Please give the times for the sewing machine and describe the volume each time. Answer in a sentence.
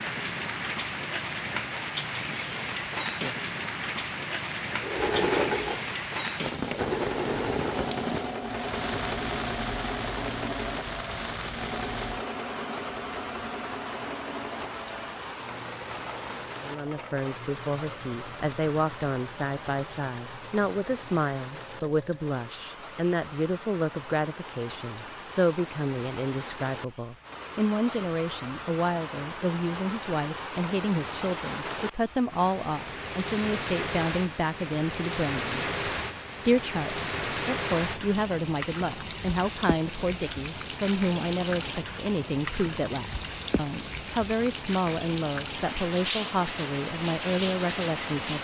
The sewing machine can be heard from 4.7 to 22.4 s, getting quieter.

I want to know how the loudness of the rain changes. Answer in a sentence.
The loudness of the rain goes down, then up.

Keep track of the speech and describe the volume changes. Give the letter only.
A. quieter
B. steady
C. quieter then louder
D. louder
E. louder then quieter
B.